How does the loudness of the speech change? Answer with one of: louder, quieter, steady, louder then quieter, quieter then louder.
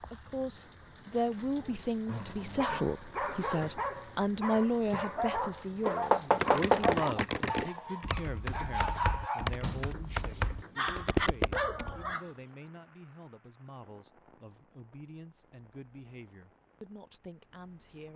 quieter.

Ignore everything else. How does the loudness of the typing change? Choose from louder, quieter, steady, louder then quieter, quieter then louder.
quieter then louder.